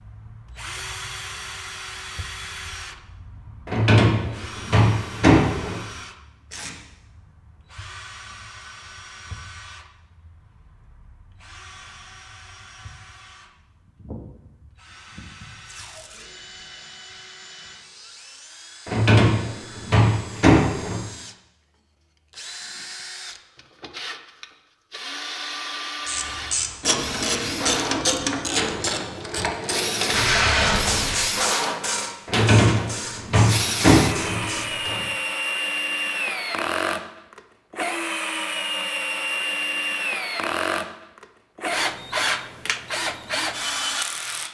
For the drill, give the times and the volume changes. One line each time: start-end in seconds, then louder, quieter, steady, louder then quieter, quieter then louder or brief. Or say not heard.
0.0-21.4 quieter
22.3-44.4 louder.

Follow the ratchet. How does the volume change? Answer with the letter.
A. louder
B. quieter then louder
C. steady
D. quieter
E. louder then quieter
D.